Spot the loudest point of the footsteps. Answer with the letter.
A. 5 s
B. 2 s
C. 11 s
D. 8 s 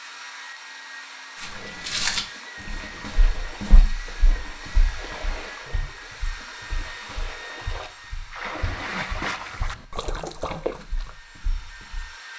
B.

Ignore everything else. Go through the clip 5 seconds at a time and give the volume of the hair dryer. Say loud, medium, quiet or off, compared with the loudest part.
loud, loud, medium.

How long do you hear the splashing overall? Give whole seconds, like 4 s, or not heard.
10 s.